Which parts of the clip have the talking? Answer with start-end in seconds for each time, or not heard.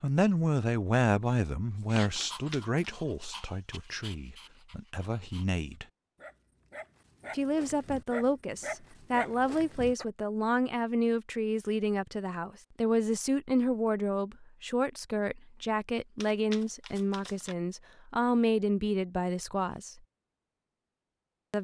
0.0-5.8, 7.3-20.0.